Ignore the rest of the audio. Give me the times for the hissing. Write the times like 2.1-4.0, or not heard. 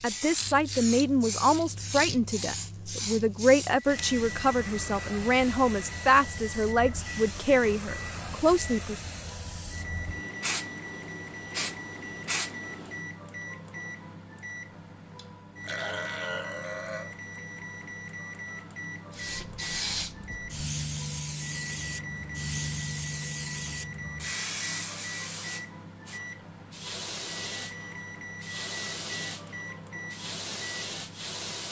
0.0-13.1, 19.1-31.6.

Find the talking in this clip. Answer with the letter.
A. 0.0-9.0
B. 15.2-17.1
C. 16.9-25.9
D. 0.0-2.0
A.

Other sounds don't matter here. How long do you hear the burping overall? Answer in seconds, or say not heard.
2 s.